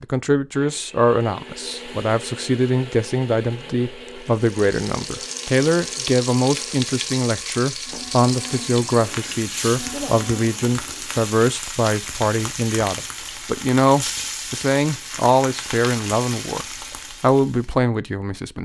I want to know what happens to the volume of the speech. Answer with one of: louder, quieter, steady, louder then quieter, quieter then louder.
steady.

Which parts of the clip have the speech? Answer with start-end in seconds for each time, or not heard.
0.0-18.6.